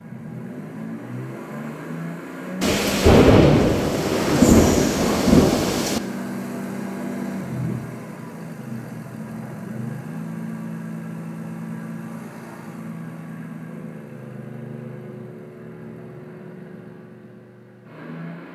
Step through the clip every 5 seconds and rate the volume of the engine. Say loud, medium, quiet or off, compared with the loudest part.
loud, loud, loud, medium.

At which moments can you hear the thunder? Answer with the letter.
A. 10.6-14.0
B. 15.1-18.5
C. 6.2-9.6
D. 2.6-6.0
D.